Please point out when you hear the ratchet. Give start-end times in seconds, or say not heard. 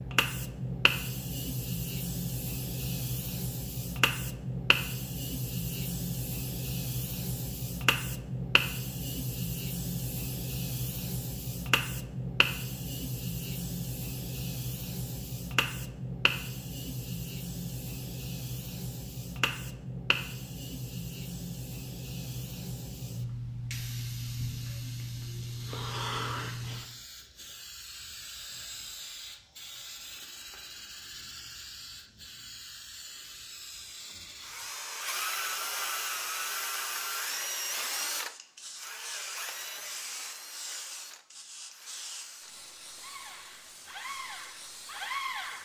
not heard.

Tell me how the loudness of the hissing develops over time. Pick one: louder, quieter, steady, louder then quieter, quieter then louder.
quieter.